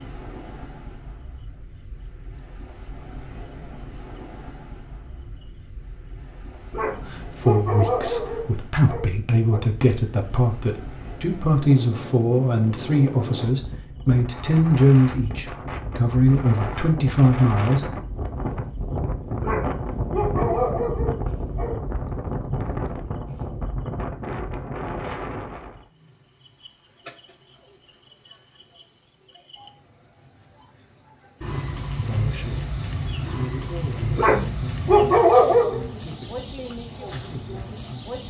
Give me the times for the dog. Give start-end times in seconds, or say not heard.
6.7-9.6, 19.4-21.8, 34.1-35.8.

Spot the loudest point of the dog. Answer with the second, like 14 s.
35 s.